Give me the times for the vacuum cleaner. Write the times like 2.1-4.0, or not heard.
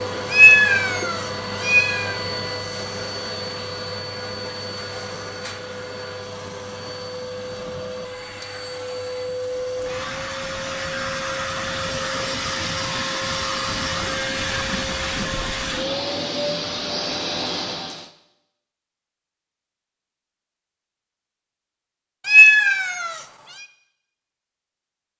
0.0-18.1.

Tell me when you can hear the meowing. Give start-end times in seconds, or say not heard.
0.3-2.1, 22.2-23.1.